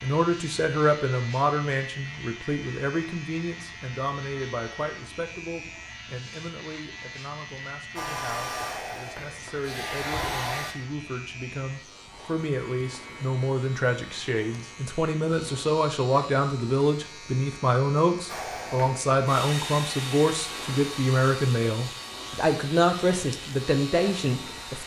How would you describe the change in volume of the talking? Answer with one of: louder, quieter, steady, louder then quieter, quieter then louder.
quieter then louder.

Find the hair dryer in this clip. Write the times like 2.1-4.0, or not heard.
8.0-10.8, 18.2-24.8.